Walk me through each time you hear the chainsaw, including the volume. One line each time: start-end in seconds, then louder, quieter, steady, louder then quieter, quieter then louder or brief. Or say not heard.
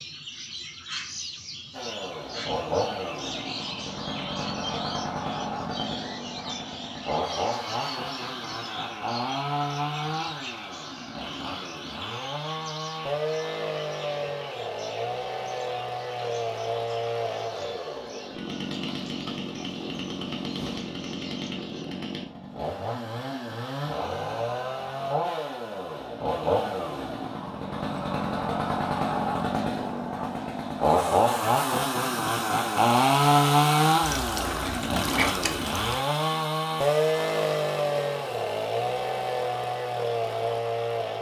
1.7-41.1 louder.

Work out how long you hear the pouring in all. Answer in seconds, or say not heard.
2 s.